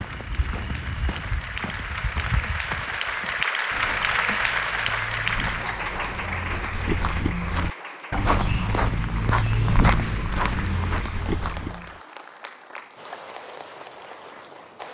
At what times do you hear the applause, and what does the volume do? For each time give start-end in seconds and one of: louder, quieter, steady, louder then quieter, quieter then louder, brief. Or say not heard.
0.0-14.8 louder then quieter.